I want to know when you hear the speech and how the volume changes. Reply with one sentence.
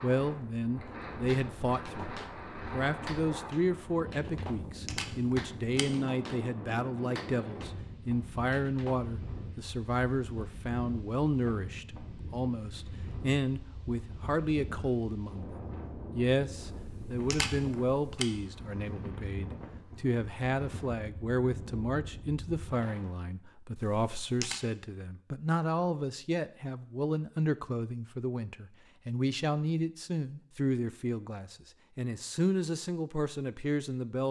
You can hear the speech from 0.0 to 15.5 s, at a steady volume; and from 16.1 to 34.2 s, at a steady volume.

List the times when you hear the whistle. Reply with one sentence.
You can't hear the whistle here.